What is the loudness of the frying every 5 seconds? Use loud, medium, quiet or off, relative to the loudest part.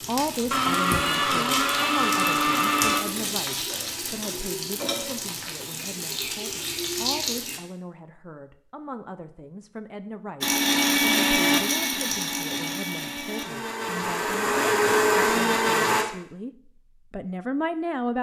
loud, loud, off, off.